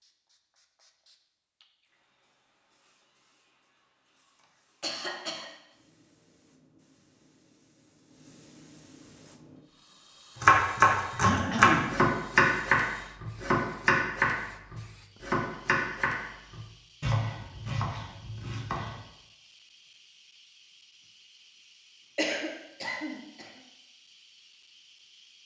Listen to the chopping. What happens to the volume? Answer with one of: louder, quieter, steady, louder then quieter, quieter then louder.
quieter.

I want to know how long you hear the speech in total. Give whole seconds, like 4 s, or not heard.
not heard.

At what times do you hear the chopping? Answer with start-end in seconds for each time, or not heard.
10.4-19.0.